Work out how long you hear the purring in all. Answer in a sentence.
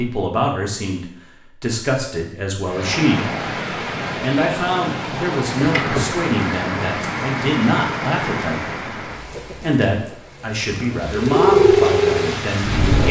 The purring can be heard for 2 seconds in total.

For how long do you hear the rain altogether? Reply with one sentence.
You can hear the rain for 10 seconds altogether.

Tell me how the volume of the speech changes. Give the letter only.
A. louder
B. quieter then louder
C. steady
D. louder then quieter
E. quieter
C.